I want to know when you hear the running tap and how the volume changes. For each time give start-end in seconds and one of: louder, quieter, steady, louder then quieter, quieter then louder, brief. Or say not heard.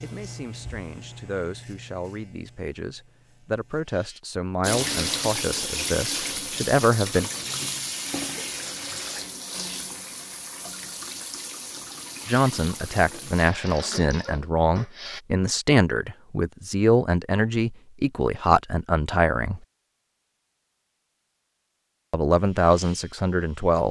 4.6-15.2 quieter.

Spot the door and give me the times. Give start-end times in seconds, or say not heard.
not heard.